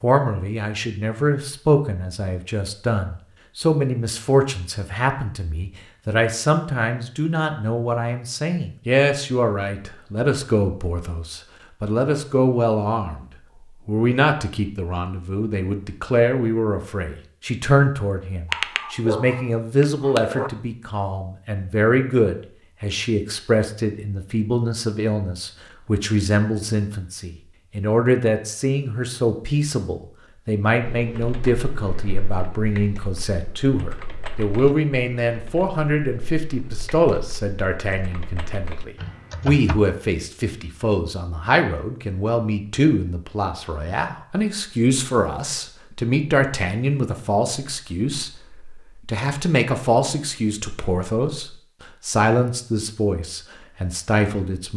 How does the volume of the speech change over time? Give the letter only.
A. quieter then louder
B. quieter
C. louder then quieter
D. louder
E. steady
E.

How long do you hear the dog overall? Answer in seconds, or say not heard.
2 s.